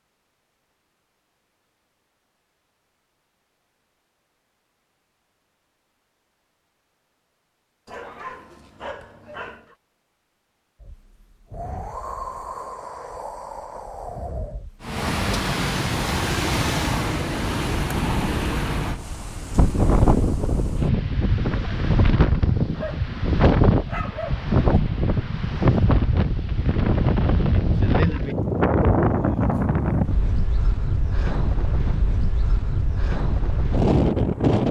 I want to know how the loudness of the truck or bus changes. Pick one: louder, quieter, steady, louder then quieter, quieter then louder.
quieter.